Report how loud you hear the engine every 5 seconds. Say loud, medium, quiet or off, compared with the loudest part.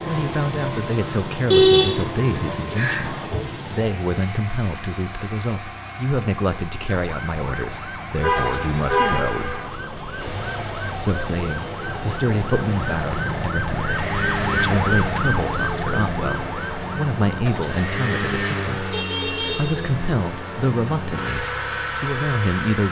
loud, medium, loud, loud, loud.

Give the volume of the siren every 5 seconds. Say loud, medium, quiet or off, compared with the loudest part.
off, medium, loud, loud, off.